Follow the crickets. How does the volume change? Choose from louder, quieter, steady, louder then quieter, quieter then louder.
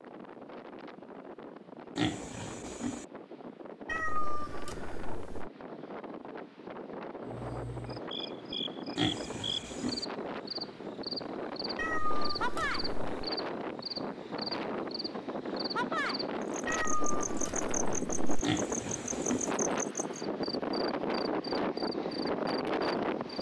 steady.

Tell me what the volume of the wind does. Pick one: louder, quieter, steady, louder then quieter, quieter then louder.
louder.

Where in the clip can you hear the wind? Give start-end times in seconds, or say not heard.
0.0-23.3.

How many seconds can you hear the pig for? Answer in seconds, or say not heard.
3 s.